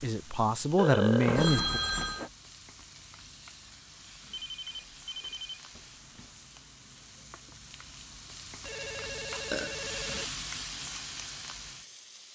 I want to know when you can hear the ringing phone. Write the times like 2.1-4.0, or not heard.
1.2-2.3, 4.3-6.3, 8.7-10.2.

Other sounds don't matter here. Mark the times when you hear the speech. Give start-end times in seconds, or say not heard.
0.0-1.8.